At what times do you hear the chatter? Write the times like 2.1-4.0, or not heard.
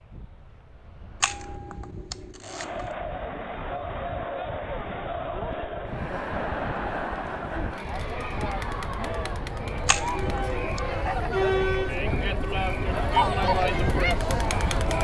2.4-14.9.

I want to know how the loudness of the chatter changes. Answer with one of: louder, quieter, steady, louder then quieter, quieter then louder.
louder.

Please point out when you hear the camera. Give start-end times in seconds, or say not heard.
1.2-2.9, 9.8-10.6.